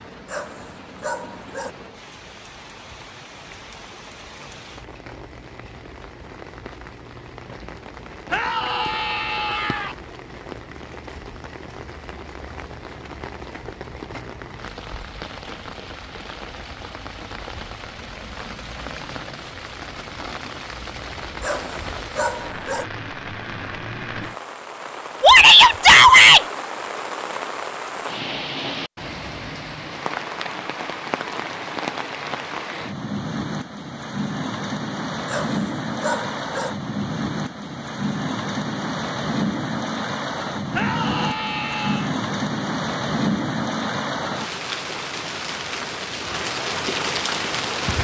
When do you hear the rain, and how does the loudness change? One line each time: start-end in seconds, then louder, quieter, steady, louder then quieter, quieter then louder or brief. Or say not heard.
0.0-48.0 louder.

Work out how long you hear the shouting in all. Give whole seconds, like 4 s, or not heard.
4 s.